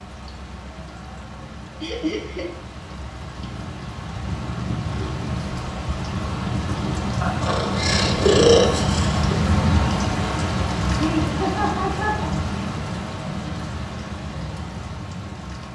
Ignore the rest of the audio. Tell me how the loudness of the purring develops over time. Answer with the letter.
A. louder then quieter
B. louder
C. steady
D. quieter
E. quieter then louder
B.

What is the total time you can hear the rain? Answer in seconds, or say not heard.
16 s.